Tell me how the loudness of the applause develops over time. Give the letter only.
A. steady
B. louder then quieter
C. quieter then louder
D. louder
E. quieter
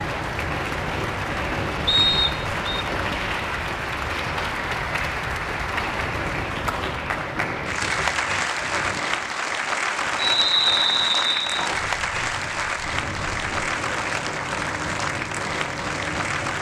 A.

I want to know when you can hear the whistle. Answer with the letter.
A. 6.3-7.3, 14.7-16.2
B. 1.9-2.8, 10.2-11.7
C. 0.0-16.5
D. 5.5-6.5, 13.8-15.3
B.